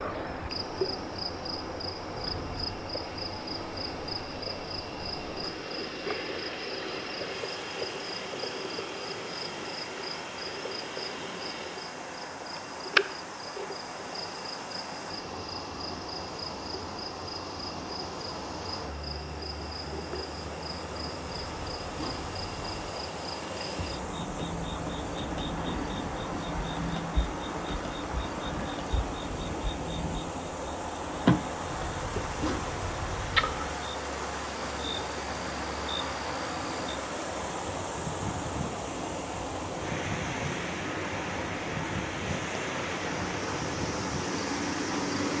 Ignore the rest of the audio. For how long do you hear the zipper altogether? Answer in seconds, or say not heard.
4 s.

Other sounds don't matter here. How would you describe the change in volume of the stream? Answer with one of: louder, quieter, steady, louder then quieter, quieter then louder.
louder.